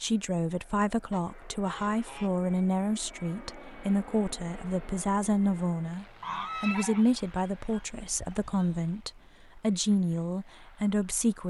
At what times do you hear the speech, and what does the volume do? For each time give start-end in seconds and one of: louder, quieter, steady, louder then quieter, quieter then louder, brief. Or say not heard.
0.0-11.4 steady.